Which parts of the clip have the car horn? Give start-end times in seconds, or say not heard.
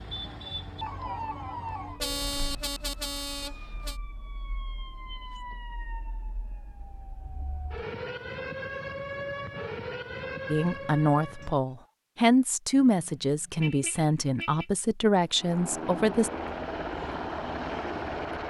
2.0-4.0, 12.7-14.7.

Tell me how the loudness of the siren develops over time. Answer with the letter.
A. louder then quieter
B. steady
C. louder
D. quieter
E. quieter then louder
E.